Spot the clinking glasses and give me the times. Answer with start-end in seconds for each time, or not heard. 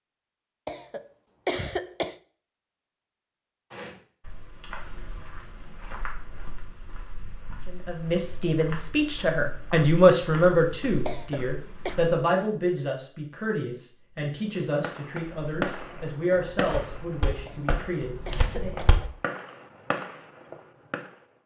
not heard.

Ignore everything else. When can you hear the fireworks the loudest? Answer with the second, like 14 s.
16 s.